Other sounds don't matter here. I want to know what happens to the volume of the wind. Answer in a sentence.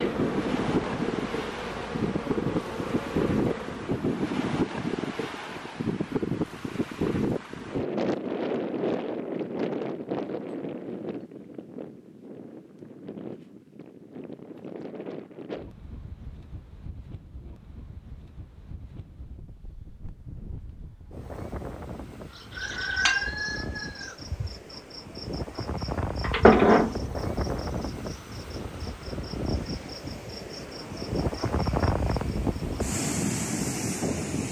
The volume of the wind goes down, then up.